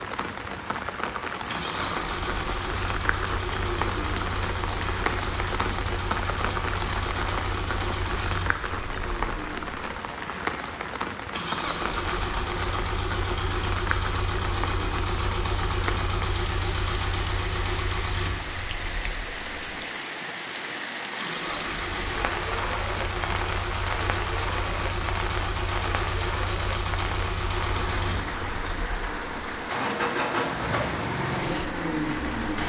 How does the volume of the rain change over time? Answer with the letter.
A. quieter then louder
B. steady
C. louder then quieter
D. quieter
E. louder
B.